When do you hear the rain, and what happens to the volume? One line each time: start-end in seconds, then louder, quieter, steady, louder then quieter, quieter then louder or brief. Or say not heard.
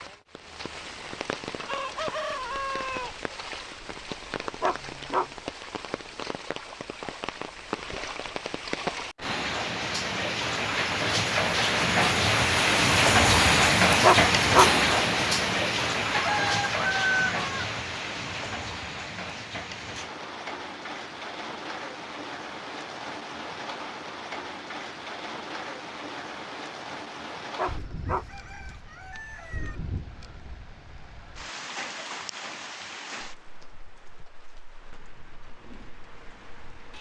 0.0-36.9 louder then quieter.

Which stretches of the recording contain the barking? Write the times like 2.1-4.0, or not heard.
4.6-5.3, 14.0-14.8, 27.6-28.3.